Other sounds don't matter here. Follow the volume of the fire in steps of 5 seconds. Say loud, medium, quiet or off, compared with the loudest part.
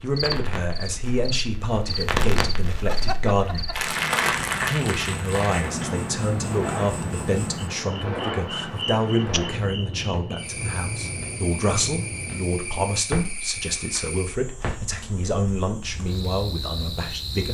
loud, loud, medium, quiet.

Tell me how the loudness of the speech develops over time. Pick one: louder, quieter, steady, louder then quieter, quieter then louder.
steady.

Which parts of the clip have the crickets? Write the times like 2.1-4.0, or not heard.
0.1-17.4.